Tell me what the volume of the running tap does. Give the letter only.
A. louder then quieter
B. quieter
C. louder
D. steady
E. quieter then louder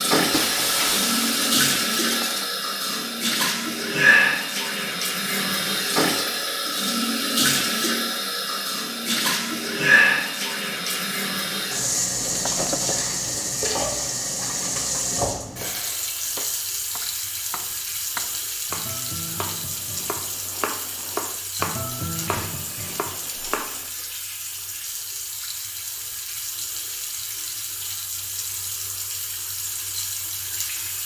B.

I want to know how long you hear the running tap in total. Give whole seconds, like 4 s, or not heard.
31 s.